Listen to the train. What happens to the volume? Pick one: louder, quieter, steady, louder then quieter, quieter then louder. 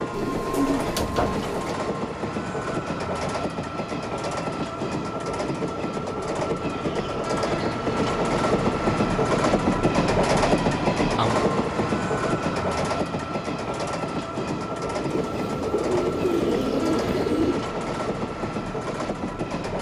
louder then quieter.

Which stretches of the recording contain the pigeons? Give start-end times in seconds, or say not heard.
0.1-1.6, 15.1-17.6.